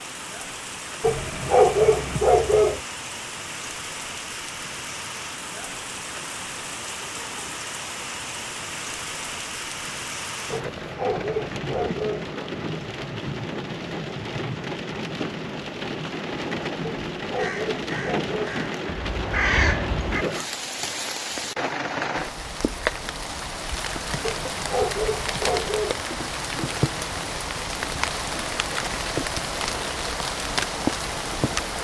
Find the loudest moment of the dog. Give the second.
2 s.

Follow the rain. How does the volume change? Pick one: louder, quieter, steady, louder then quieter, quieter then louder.
louder.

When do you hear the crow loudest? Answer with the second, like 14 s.
20 s.